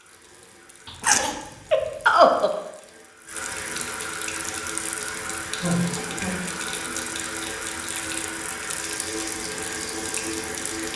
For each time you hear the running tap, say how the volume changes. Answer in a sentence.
The running tap can be heard from 0.0 to 10.9 s, getting louder.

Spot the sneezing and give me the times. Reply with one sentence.
The sneezing can be heard from 1.0 to 2.5 s and from 5.6 to 6.4 s.